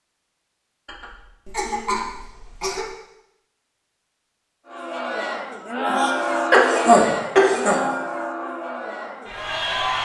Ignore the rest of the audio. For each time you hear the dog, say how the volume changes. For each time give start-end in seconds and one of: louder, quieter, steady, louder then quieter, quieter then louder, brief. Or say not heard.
not heard.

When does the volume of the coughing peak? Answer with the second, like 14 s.
7 s.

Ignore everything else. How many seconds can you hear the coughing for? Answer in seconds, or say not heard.
4 s.